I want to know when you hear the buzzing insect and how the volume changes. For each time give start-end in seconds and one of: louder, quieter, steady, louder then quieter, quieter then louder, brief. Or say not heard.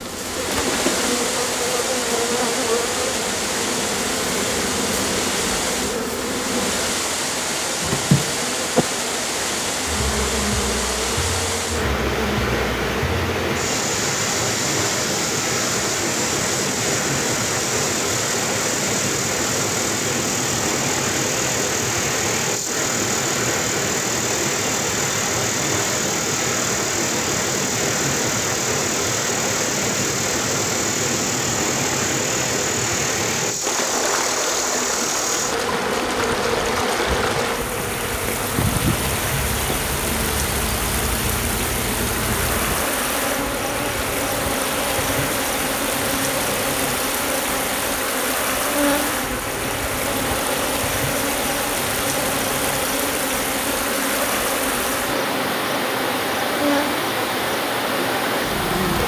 0.0-59.0 steady.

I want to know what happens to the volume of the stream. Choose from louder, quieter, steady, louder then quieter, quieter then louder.
steady.